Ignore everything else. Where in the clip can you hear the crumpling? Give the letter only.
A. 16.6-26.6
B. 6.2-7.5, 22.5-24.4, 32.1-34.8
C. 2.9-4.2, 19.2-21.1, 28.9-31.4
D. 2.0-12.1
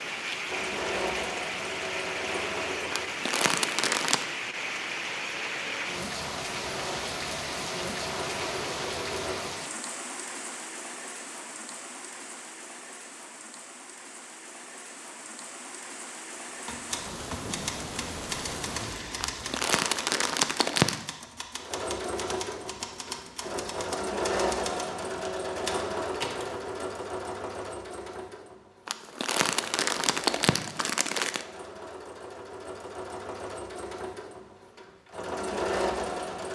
C.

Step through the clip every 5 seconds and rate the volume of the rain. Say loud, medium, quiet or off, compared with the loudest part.
loud, loud, medium, medium, off, off, off, off.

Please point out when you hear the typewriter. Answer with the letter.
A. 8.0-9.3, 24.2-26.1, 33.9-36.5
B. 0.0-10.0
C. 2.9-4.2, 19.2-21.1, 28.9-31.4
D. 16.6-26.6
D.